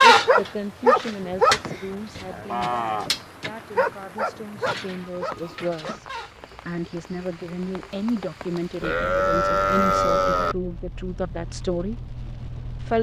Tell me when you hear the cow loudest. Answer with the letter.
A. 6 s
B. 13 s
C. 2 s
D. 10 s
D.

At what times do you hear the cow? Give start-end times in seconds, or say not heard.
1.2-3.1, 8.8-10.6.